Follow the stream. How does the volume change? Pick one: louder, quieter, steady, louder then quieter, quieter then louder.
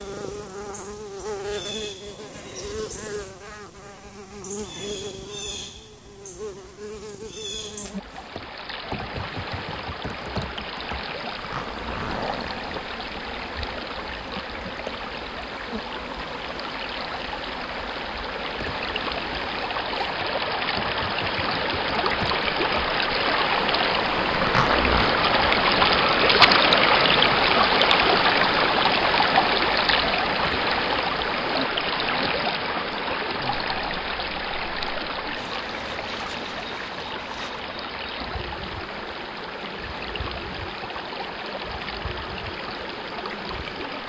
louder then quieter.